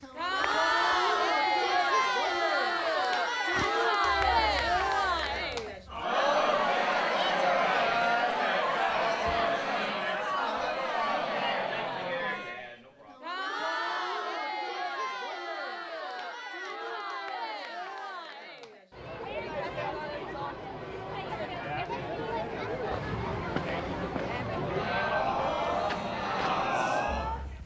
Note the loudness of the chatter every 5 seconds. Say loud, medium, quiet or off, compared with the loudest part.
loud, loud, medium, medium, medium, loud.